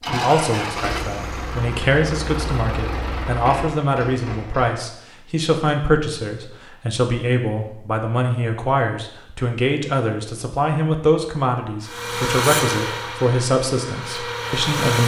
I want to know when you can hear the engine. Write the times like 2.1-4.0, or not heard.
0.0-4.9, 11.8-15.0.